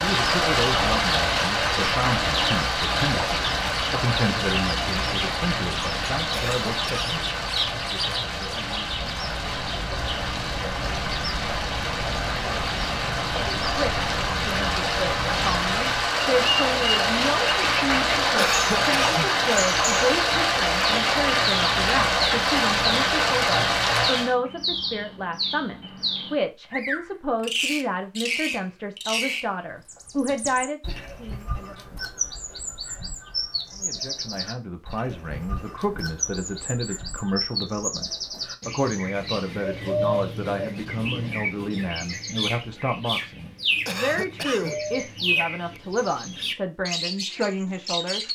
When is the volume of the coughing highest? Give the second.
19 s.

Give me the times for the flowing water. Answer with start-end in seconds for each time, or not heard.
0.0-24.4.